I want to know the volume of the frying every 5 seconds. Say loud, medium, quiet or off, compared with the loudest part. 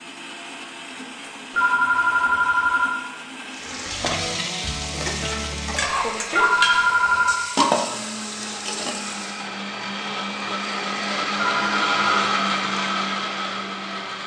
loud, loud, off.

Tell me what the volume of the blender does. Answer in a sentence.
The volume of the blender goes up.